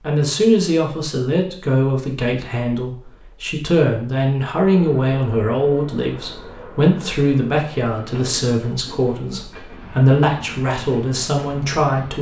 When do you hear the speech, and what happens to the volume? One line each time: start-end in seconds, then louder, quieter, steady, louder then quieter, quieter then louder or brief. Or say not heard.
0.0-12.1 steady.